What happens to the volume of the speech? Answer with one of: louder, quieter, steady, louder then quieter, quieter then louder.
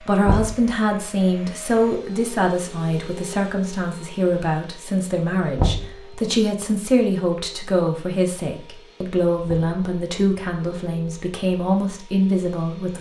steady.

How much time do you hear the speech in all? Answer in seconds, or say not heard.
13 s.